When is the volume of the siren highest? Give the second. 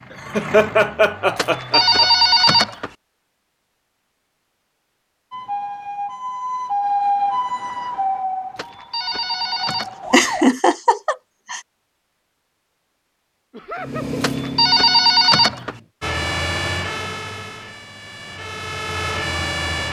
7 s.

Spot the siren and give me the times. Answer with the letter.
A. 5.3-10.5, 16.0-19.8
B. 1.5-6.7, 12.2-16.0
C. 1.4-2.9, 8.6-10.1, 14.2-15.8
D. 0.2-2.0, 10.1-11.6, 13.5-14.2
A.